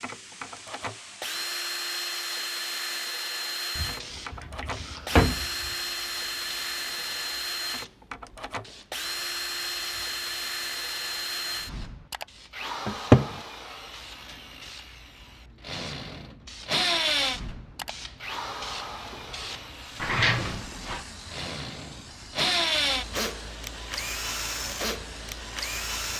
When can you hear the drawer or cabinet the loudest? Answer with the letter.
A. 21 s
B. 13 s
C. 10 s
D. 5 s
B.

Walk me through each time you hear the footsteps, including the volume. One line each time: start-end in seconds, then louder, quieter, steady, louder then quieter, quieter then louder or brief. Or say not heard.
not heard.